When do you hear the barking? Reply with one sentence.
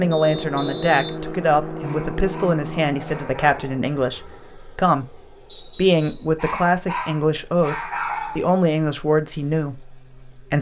The barking can be heard from 1.8 to 3.8 s and from 6.3 to 8.4 s.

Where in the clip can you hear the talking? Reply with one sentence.
The talking can be heard from 0.0 to 10.5 s.